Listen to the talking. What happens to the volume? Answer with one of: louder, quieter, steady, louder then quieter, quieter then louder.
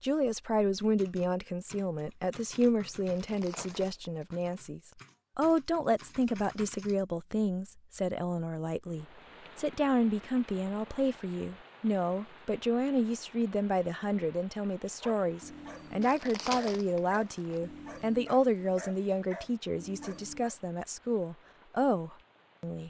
steady.